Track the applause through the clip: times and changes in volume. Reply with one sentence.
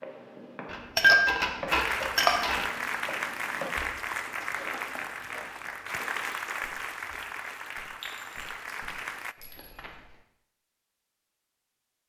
The applause can be heard from 1.6 to 9.3 s, getting quieter.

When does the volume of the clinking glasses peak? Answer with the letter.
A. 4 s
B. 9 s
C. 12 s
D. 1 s
D.